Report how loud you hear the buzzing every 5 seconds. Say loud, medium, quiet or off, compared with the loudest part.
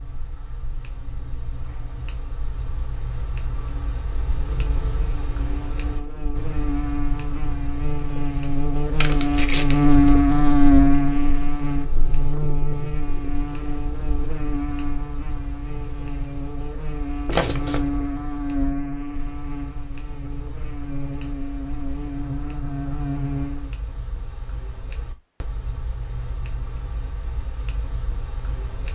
quiet, loud, loud, medium, medium, off.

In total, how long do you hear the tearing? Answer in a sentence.
You can hear the tearing for 2 seconds altogether.